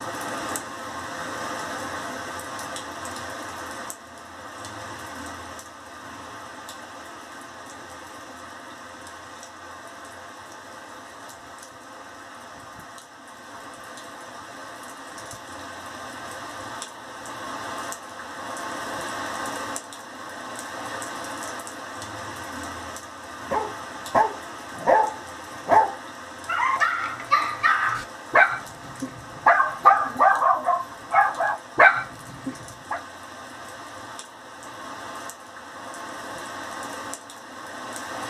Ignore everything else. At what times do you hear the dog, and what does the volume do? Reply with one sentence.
You can hear the dog from 23.5 to 33.0 s, at a steady volume.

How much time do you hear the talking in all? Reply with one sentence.
You can't hear the talking here.